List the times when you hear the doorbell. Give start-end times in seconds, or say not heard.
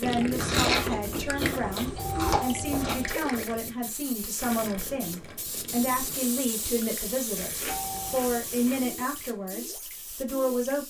1.9-3.2, 7.7-8.2.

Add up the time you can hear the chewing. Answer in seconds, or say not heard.
4 s.